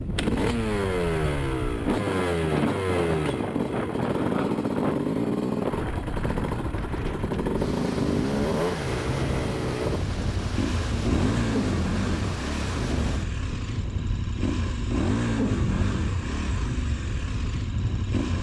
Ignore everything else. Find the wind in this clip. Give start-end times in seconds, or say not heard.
0.0-18.3.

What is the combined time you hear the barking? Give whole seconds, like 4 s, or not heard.
not heard.